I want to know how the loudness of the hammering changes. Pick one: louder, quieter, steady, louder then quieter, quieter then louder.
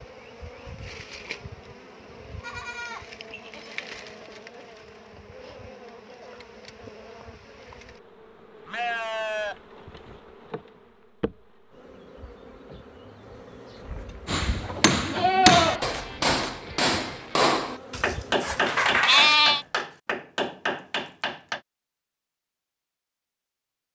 quieter.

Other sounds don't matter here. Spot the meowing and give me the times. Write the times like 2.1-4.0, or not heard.
18.4-19.4.